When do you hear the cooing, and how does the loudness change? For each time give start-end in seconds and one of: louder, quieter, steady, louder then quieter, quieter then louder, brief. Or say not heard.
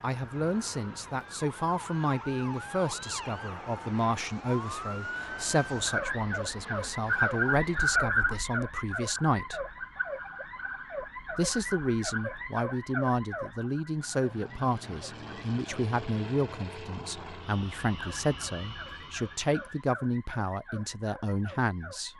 not heard.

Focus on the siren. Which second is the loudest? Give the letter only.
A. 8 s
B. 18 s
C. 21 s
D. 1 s
A.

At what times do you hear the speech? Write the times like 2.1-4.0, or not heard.
0.0-9.6, 11.3-22.1.